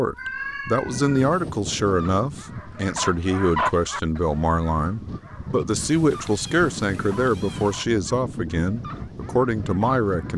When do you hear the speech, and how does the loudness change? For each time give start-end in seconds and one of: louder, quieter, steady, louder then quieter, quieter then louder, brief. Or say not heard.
0.0-10.3 steady.